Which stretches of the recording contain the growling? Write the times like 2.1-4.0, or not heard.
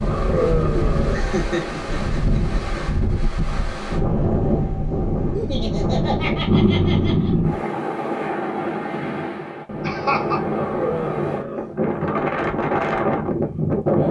0.0-1.2, 5.8-7.5, 10.4-12.2.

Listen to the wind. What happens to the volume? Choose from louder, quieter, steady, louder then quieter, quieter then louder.
steady.